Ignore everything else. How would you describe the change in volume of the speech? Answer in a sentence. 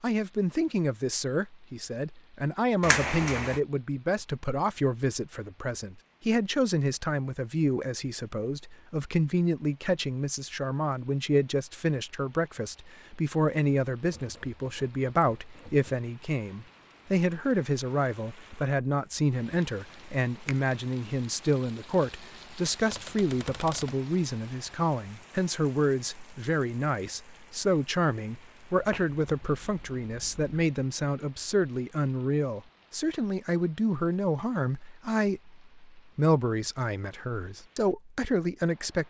The loudness of the speech stays about the same.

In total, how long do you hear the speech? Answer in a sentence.
You can hear the speech for 39 seconds altogether.